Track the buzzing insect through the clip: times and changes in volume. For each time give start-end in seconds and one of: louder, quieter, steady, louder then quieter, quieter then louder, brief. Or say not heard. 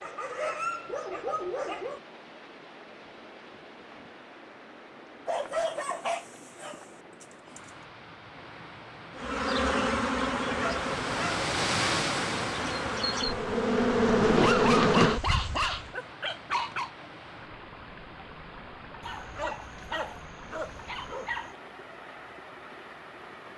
9.2-15.9 quieter then louder.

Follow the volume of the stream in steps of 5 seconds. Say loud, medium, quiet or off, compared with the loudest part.
quiet, quiet, loud, quiet, quiet.